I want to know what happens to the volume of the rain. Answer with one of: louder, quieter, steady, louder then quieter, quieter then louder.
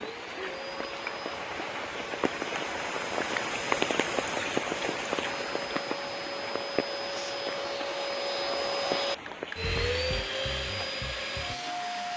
louder then quieter.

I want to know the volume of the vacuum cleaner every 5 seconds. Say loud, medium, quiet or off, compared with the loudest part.
medium, loud, loud.